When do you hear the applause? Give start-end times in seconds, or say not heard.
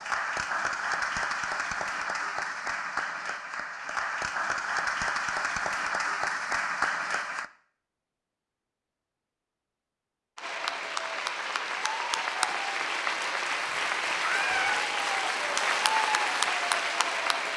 0.0-7.5, 10.3-17.5.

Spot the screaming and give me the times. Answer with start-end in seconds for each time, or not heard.
14.2-14.8.